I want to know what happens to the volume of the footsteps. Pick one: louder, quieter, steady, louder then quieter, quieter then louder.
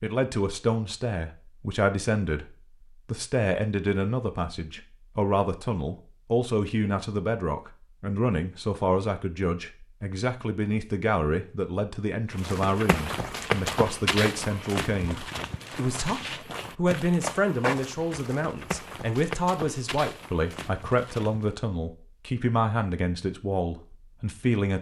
quieter.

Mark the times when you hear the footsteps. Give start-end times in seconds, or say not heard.
12.3-21.5.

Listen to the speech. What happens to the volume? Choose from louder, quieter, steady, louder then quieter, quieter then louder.
steady.